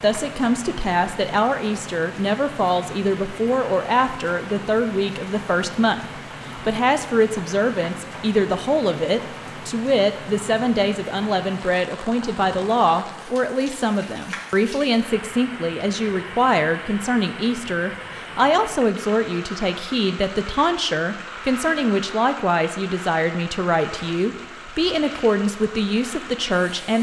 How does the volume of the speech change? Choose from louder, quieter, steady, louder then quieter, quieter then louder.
steady.